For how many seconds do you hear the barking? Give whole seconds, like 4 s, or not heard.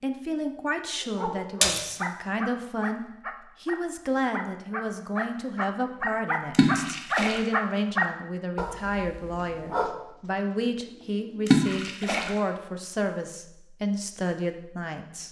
9 s.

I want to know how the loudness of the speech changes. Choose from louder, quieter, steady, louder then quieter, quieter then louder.
steady.